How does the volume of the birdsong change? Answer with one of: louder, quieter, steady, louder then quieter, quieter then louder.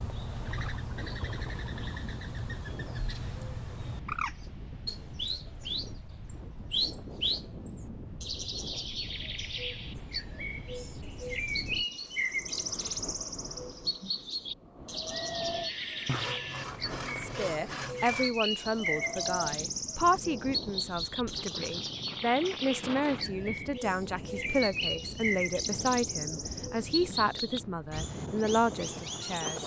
steady.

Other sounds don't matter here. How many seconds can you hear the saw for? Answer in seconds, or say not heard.
2 s.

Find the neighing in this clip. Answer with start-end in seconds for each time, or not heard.
15.1-16.6.